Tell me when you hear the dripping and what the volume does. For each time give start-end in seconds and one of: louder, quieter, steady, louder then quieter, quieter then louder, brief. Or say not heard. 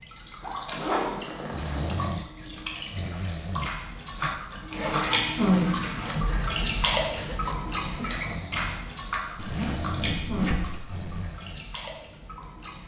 0.0-12.8 louder then quieter.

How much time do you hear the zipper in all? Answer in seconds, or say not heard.
5 s.